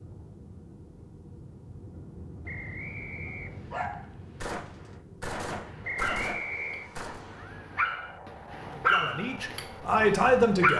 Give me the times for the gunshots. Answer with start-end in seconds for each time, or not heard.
4.4-7.2.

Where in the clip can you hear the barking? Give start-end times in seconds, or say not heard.
3.2-10.7.